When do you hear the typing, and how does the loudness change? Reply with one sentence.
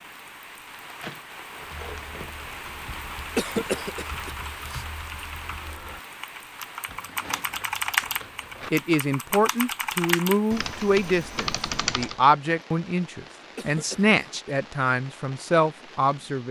The typing can be heard from 1.6 to 12.2 s, getting louder.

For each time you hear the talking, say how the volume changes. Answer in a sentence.
You can hear the talking from 8.7 to 16.4 s, at a steady volume.